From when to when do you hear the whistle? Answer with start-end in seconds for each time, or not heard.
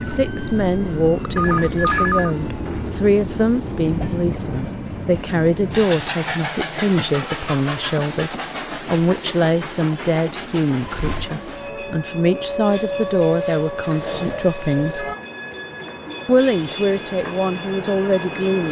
not heard.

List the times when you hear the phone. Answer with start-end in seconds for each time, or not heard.
1.4-3.0.